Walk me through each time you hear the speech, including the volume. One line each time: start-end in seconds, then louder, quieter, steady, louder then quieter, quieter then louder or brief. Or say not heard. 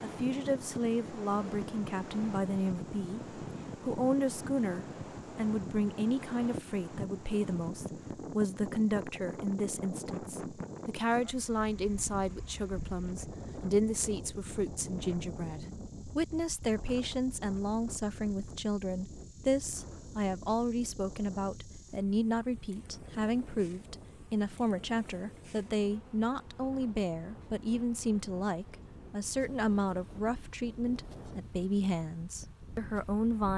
0.0-33.5 steady.